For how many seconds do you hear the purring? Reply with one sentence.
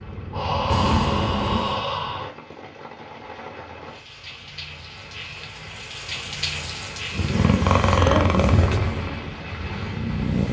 You can hear the purring for 5 seconds altogether.